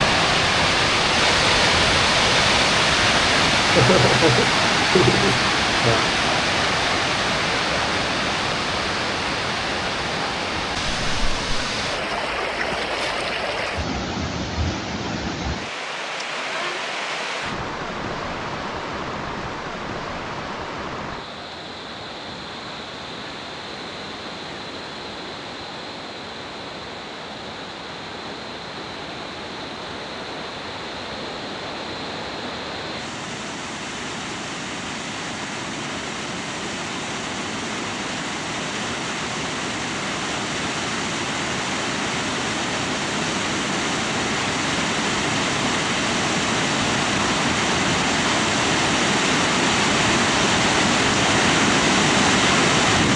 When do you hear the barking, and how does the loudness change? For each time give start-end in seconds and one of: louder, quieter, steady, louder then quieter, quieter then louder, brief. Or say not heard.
not heard.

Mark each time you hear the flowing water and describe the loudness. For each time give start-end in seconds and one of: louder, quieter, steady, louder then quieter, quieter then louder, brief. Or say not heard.
0.0-53.1 quieter then louder.